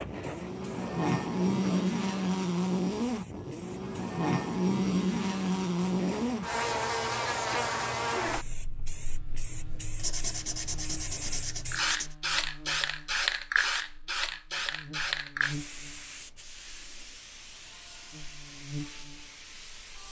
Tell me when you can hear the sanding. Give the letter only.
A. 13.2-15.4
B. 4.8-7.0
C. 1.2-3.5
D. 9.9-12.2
D.